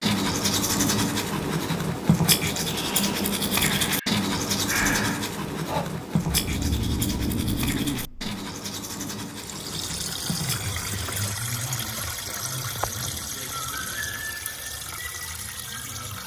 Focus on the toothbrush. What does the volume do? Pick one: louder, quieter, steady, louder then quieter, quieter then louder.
quieter.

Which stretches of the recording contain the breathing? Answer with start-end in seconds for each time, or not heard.
2.6-8.3.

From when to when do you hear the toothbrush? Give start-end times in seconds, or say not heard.
0.0-11.3.